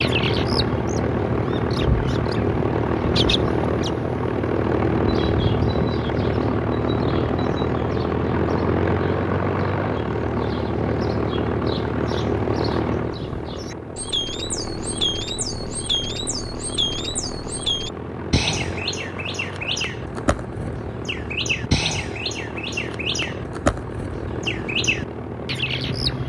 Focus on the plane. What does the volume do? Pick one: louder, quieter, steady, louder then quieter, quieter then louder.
quieter.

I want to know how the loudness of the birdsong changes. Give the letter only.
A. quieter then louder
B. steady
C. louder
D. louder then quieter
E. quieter
A.